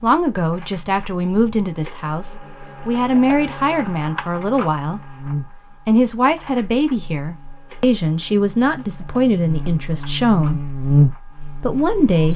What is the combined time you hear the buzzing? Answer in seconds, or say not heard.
12 s.